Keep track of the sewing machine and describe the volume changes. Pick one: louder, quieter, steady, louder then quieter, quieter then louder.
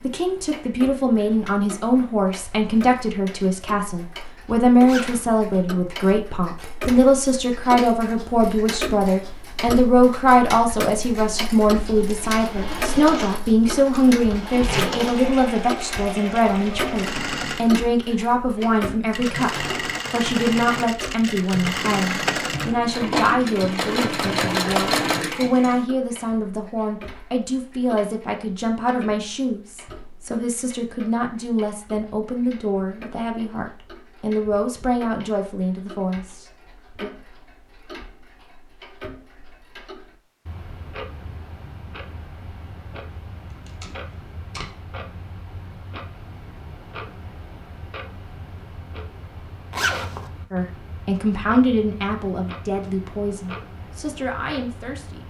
louder.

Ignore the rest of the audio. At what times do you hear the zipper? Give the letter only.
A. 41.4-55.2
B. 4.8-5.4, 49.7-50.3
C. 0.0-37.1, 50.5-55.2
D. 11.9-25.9
B.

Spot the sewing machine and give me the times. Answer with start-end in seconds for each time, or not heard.
11.9-25.9.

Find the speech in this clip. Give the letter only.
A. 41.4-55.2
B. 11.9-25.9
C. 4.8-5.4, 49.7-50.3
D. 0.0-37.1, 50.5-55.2
D.